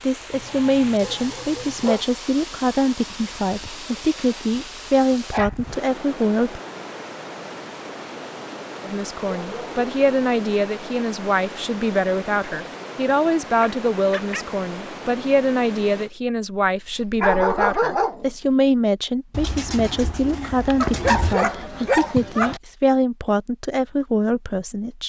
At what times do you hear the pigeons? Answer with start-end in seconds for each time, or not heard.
19.3-21.4.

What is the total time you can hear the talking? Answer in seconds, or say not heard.
23 s.